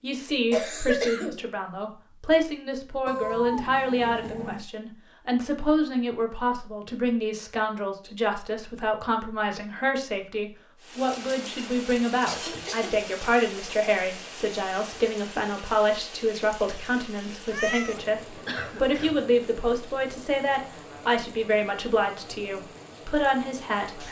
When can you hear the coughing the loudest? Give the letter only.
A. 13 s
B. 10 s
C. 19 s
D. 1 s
D.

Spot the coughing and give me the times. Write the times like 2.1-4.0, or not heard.
0.5-1.4, 12.2-12.9, 18.4-19.2.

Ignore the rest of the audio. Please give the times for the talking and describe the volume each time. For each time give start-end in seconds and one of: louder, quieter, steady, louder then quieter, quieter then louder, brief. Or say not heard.
0.0-24.0 steady.